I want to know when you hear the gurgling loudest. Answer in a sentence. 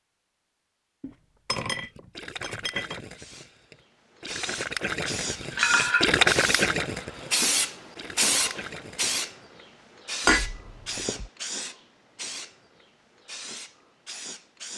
The loudest moment of the gurgling is at 6 seconds.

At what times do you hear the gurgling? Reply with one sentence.
You can hear the gurgling from 1.8 to 9.2 s.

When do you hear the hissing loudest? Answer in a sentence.
The loudest moment of the hissing is at 8 seconds.